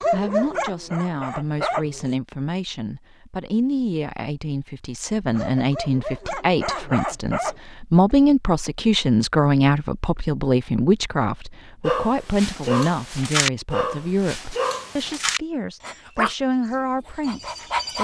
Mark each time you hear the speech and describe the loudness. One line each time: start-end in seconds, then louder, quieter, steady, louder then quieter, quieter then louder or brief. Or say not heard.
0.1-17.9 louder then quieter.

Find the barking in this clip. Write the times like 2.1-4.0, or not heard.
0.0-2.1, 5.3-7.5, 11.8-17.9.